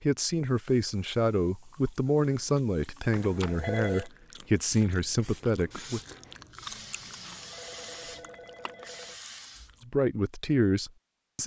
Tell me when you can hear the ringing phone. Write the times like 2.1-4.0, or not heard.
3.1-4.1, 7.0-9.2.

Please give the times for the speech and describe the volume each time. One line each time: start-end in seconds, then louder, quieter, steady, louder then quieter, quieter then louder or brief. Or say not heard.
0.0-6.0 steady
9.8-11.4 brief.